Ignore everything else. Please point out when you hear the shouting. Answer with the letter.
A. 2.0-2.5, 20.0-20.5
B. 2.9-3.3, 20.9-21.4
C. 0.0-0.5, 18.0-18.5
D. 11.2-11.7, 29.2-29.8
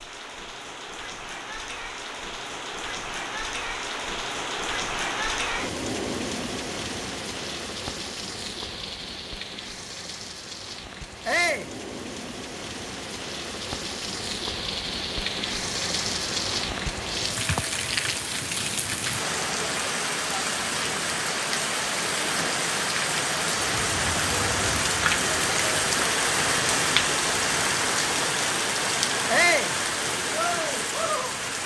D.